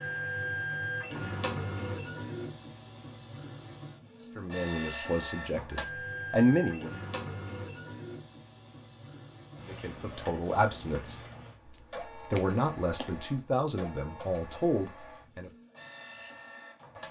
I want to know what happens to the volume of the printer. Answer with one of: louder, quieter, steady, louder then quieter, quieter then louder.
quieter.